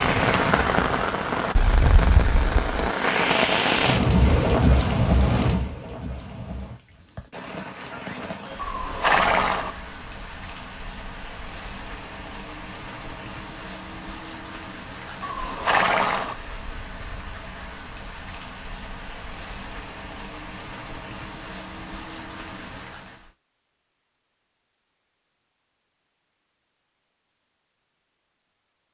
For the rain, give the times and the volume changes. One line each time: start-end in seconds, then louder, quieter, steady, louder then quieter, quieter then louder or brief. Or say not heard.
0.0-23.3 quieter.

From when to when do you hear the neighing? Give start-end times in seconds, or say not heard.
8.6-9.8, 15.2-16.4.